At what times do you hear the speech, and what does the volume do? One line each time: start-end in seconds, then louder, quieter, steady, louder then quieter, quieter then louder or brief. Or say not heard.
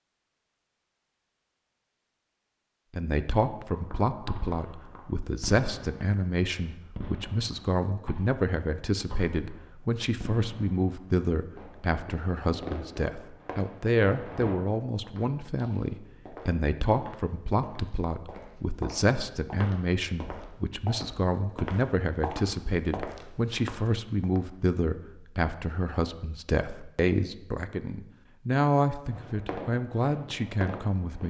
2.9-31.2 steady.